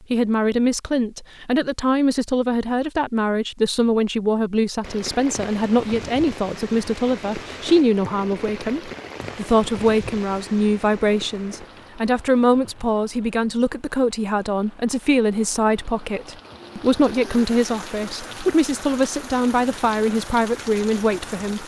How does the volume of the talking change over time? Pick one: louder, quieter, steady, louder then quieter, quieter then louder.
steady.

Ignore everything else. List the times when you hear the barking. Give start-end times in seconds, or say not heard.
not heard.